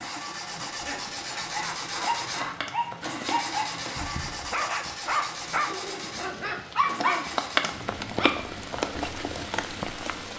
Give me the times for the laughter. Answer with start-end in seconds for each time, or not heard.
0.7-2.5, 5.7-6.2.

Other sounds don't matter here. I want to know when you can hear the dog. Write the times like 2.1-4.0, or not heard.
1.4-8.4.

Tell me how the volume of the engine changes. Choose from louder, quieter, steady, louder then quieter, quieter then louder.
quieter.